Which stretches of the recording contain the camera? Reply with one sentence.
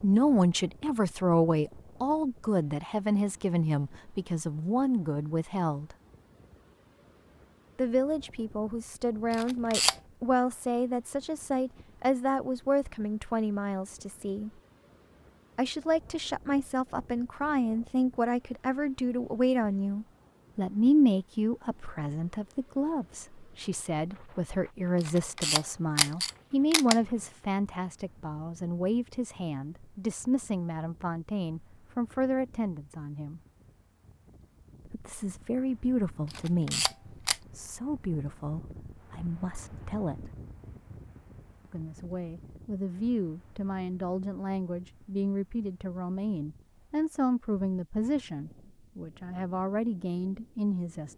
The camera can be heard from 9.3 to 9.9 s, from 25.0 to 26.9 s and from 36.3 to 37.4 s.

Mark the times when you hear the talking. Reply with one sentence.
You can hear the talking from 0.0 to 6.0 s, from 7.8 to 14.5 s, from 15.6 to 33.4 s, from 34.9 to 40.3 s and from 41.6 to 51.1 s.